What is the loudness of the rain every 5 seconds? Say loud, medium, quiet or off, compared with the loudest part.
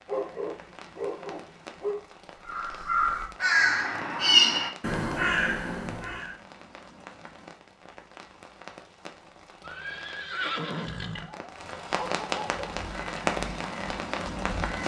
quiet, quiet, loud.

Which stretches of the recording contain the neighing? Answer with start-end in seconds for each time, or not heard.
9.6-11.3.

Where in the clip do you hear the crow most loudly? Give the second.
4 s.